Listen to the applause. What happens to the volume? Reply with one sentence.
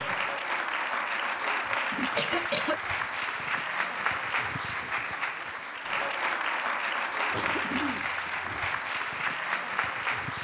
The volume of the applause stays about the same.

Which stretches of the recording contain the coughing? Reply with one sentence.
The coughing can be heard from 1.6 to 2.8 s and from 7.3 to 8.7 s.